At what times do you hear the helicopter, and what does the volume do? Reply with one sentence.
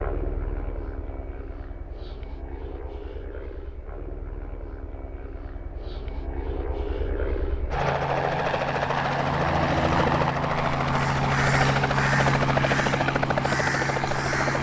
You can hear the helicopter from 0.0 to 14.5 s, getting louder.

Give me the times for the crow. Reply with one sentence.
The crow can be heard from 10.9 to 14.5 s.